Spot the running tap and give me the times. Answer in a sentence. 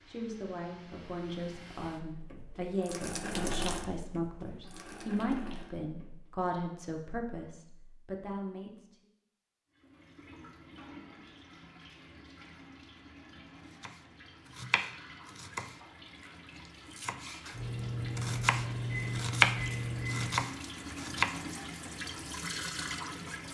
You can hear the running tap from 0.0 to 6.5 s and from 9.7 to 23.4 s.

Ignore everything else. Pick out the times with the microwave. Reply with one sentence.
The microwave can be heard from 17.5 to 20.4 s.